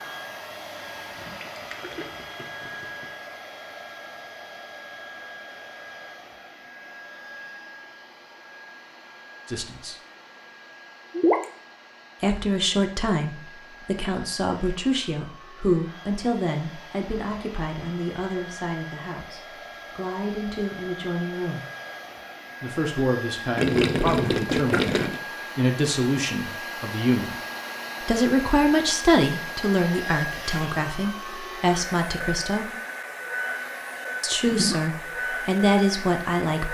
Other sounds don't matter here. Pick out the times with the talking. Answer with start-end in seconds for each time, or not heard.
9.5-9.9, 12.2-21.6, 22.6-27.4, 28.0-32.7, 34.2-36.6.